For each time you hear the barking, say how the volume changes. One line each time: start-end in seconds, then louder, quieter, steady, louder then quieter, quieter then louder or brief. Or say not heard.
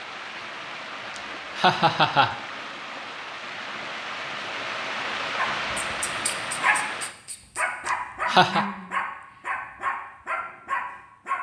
5.3-11.3 steady.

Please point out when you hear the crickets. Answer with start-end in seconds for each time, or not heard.
not heard.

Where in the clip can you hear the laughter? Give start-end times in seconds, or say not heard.
1.1-2.4, 7.8-8.7.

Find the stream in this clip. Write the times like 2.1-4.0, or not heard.
0.0-7.2.